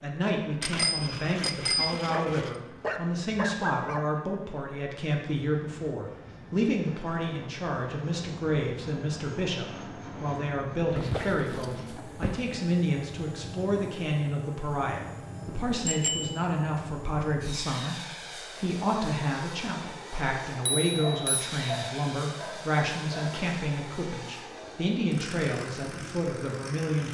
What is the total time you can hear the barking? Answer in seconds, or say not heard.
6 s.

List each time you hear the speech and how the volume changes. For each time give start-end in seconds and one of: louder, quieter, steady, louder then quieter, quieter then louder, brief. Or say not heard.
0.0-27.0 steady.